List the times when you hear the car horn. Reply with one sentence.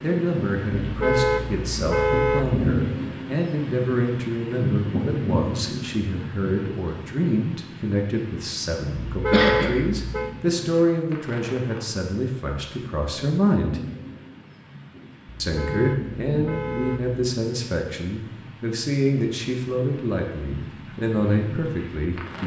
The car horn can be heard from 0.8 to 2.6 s, from 9.1 to 10.3 s and from 15.4 to 17.2 s.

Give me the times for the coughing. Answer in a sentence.
The coughing can be heard from 8.8 to 9.8 s.